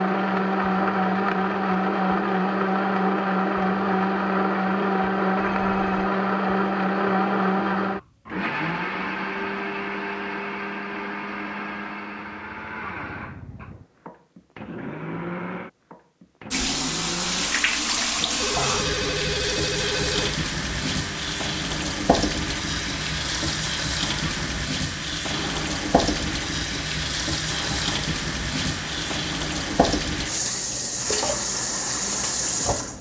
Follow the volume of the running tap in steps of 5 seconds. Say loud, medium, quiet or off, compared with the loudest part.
off, off, off, loud, loud, loud, loud.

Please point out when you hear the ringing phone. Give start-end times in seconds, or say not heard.
5.5-6.1, 18.4-20.4.